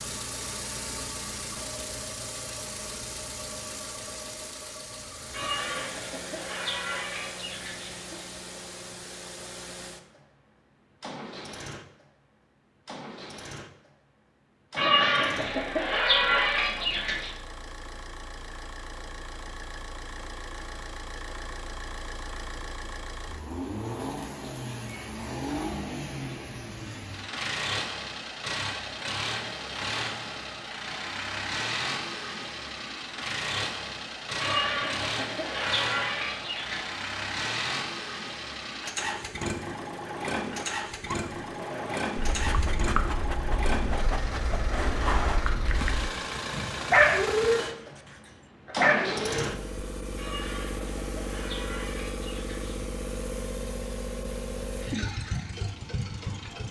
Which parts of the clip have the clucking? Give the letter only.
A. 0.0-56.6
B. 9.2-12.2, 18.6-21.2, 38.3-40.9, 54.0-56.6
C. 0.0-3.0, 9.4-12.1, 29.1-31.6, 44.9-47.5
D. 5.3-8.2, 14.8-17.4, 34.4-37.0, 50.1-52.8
D.